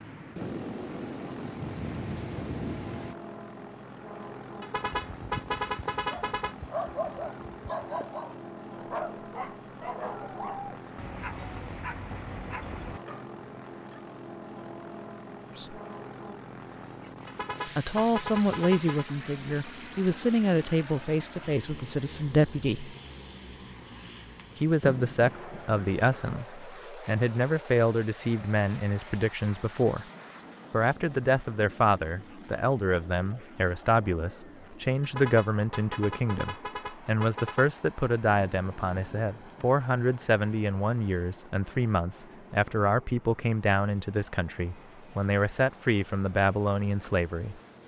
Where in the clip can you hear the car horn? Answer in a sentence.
The car horn can be heard from 4.6 to 6.5 s, from 17.2 to 19.1 s and from 35.0 to 37.7 s.